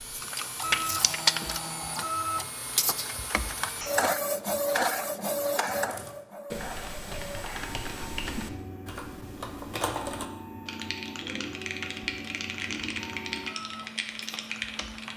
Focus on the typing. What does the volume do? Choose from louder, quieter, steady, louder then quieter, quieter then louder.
louder.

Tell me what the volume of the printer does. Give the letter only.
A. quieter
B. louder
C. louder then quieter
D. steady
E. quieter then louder
A.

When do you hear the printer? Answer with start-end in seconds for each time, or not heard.
0.0-15.1.